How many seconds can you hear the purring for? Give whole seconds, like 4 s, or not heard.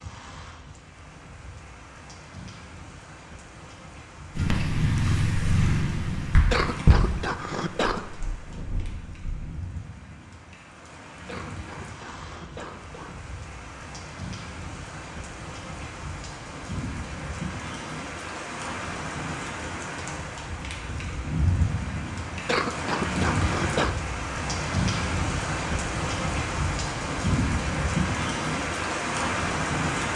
5 s.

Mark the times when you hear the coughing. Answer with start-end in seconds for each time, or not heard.
6.5-8.1, 11.2-13.2, 22.4-23.9.